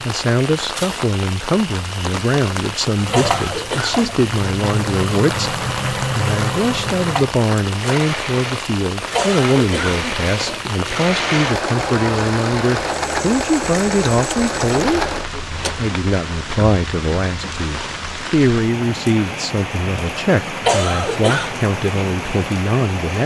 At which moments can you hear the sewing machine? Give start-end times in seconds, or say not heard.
3.0-15.8.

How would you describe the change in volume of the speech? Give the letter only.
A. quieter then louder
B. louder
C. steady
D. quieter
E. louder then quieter
C.